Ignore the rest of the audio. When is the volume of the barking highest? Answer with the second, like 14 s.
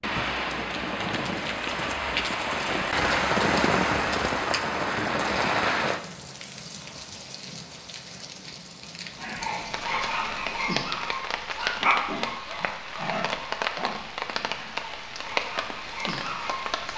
12 s.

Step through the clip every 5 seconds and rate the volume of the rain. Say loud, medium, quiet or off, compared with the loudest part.
loud, medium, medium, medium.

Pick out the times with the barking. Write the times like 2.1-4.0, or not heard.
9.1-16.9.